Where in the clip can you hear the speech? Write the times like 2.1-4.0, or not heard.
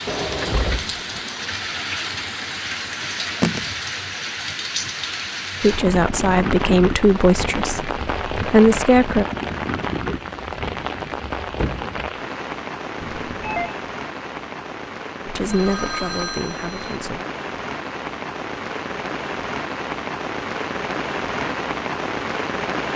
5.6-9.2, 15.2-17.2.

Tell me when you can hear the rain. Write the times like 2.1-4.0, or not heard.
0.0-22.9.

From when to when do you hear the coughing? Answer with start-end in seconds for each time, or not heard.
not heard.